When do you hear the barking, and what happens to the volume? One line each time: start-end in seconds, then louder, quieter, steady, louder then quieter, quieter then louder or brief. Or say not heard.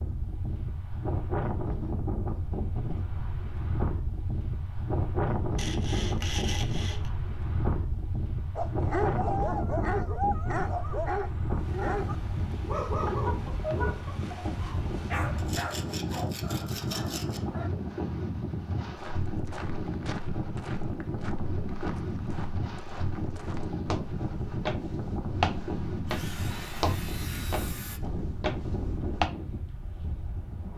8.6-17.7 quieter.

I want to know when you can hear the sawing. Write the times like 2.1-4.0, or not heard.
5.5-7.1, 15.3-17.4, 26.1-28.0.